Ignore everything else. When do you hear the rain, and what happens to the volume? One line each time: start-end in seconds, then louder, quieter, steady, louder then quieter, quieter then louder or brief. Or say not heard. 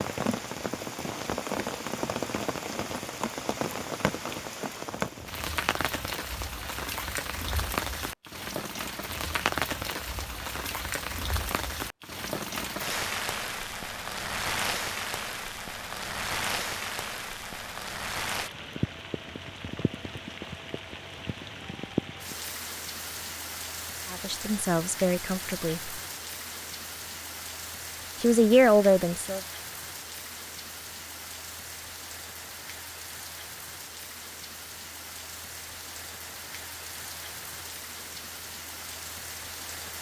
0.0-39.9 quieter.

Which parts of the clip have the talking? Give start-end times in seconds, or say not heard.
24.1-26.0, 28.2-29.4.